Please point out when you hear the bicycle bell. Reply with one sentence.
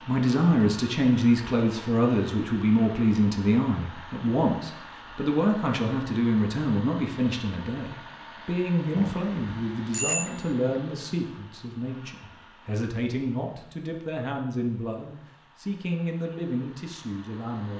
You can hear the bicycle bell from 8.9 to 10.3 s.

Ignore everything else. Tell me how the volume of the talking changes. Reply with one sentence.
The loudness of the talking goes down.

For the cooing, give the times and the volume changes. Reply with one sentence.
You can't hear the cooing here.